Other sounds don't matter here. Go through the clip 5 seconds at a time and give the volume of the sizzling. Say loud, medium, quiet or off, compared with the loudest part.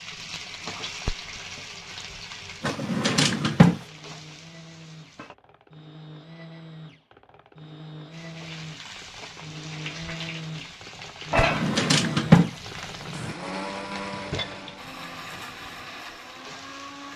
medium, medium, loud, quiet.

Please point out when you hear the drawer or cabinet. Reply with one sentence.
The drawer or cabinet can be heard from 2.6 to 3.8 s and from 11.3 to 13.3 s.